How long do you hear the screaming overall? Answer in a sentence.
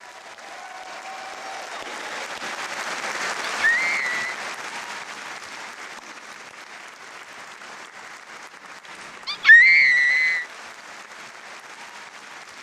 You can hear the screaming for 2 seconds altogether.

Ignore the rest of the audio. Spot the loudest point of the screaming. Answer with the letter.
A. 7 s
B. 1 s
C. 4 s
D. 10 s
D.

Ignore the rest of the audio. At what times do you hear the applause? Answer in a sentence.
You can hear the applause from 0.0 to 12.5 s.